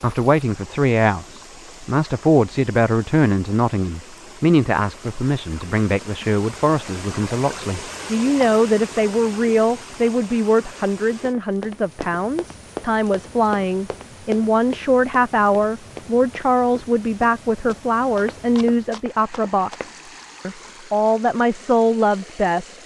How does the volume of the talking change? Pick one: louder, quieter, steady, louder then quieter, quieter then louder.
steady.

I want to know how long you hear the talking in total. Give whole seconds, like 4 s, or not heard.
23 s.